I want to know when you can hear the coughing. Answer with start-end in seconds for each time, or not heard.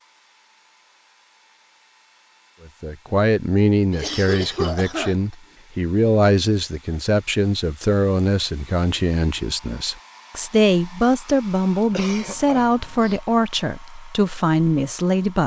3.9-5.3, 11.9-13.2.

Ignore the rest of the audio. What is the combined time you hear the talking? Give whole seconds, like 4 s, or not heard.
13 s.